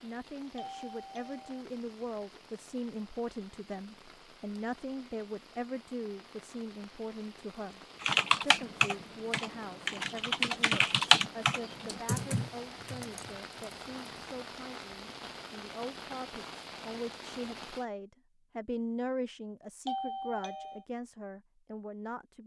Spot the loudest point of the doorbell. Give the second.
20 s.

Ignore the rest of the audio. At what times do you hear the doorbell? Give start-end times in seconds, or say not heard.
0.6-1.6, 19.9-20.9.